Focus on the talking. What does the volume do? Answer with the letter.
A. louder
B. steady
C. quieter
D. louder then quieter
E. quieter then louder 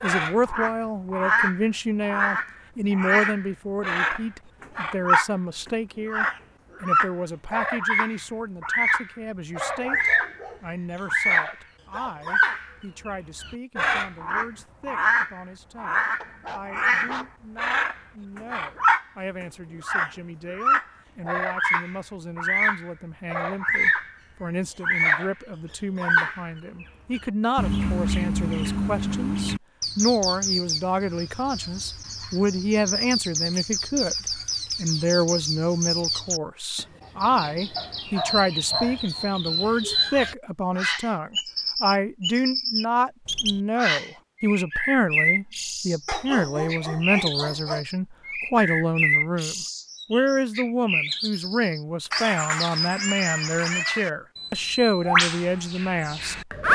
E.